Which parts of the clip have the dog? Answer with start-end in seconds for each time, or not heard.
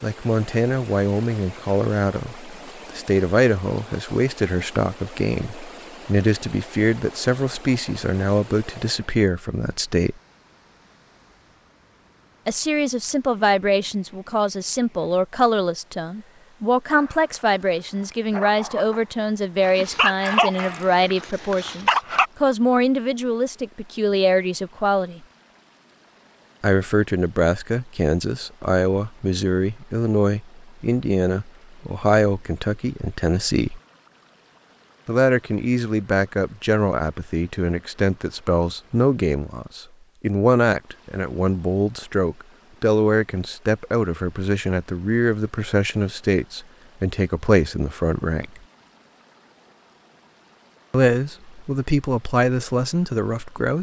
16.9-22.3.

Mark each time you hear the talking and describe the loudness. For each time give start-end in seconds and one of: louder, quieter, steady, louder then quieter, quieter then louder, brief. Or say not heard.
0.0-10.2 steady
12.4-25.2 steady
26.6-33.8 steady
35.0-48.6 steady
50.9-53.7 brief.